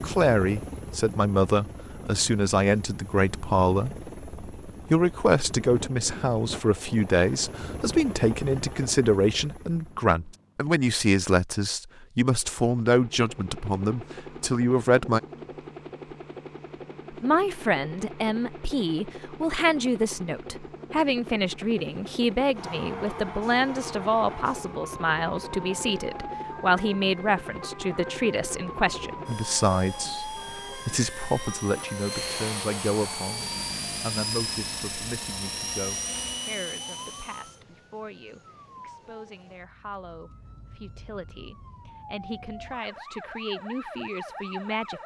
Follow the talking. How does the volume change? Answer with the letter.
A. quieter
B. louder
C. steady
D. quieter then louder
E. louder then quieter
A.